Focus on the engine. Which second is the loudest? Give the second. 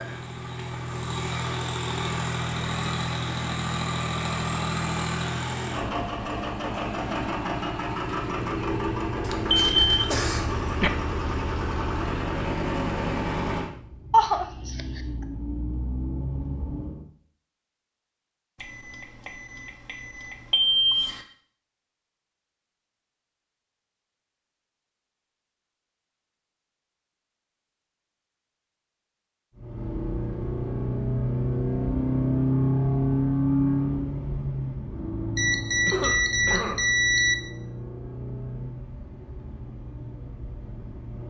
33 s.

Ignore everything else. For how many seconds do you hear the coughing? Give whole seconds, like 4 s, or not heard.
3 s.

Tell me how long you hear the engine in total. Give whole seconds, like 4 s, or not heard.
29 s.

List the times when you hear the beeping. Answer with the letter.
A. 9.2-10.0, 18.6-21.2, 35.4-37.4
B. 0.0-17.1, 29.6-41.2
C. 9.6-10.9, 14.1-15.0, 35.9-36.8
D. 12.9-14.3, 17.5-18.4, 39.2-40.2
A.